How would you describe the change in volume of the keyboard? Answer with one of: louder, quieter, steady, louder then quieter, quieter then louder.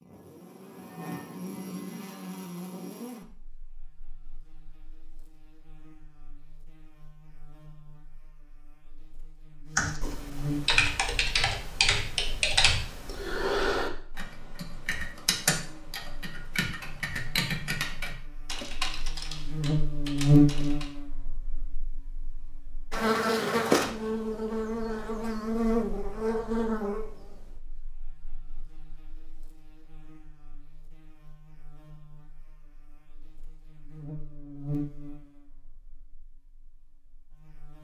quieter.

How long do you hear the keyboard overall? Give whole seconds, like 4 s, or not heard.
11 s.